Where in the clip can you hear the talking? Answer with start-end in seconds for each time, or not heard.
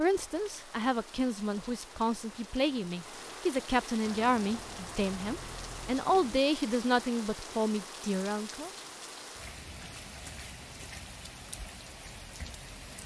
0.0-8.7.